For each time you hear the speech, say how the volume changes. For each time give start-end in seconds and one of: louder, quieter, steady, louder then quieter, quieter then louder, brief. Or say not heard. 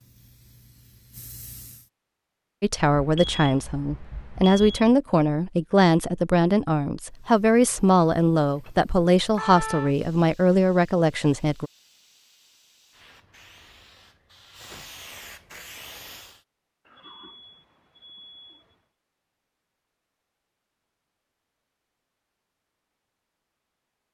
2.6-11.7 steady.